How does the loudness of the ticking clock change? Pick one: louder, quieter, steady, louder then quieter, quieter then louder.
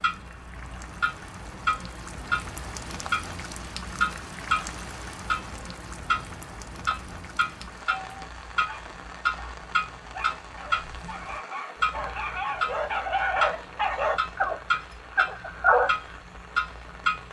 steady.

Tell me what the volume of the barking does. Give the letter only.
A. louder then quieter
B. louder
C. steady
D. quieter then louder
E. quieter
B.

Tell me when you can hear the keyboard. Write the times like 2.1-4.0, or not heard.
not heard.